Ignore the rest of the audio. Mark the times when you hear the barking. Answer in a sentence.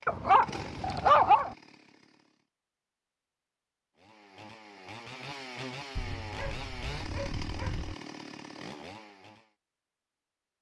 You can hear the barking from 0.1 to 1.6 s and from 6.0 to 8.0 s.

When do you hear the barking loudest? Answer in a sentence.
The loudest moment of the barking is at 1 second.